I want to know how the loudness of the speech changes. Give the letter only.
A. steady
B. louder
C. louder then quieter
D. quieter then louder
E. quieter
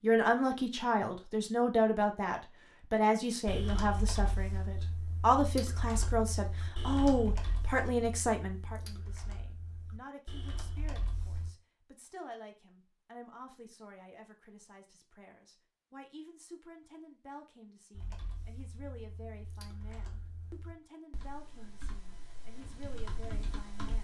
E.